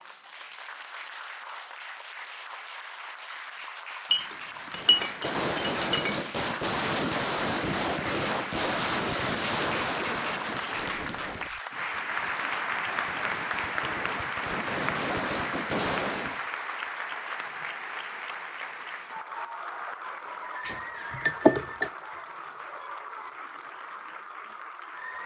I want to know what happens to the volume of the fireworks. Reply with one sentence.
The loudness of the fireworks goes down, then up.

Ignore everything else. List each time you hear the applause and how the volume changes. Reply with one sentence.
You can hear the applause from 0.0 to 25.2 s, getting louder then quieter.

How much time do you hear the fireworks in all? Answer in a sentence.
You can hear the fireworks for 12 seconds altogether.